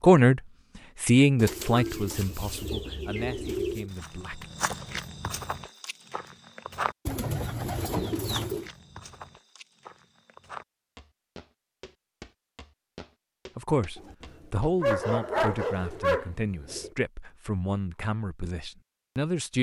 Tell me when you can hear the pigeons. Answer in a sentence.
You can hear the pigeons from 1.4 to 3.9 s, from 7.0 to 8.7 s and from 13.9 to 16.9 s.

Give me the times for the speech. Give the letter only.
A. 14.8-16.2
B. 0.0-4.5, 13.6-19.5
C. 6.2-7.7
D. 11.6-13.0
B.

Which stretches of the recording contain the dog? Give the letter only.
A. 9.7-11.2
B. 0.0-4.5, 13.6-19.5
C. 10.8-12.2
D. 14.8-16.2
D.